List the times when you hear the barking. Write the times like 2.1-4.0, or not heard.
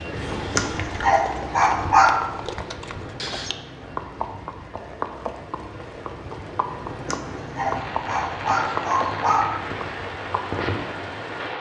0.6-2.2, 7.0-9.6.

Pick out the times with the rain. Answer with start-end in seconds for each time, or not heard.
0.0-11.5.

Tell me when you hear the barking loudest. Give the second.
2 s.